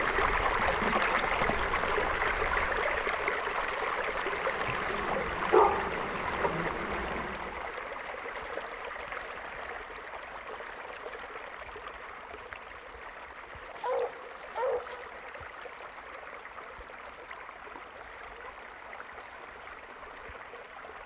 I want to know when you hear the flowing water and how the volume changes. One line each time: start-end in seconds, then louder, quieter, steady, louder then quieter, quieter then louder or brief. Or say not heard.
0.0-21.0 quieter.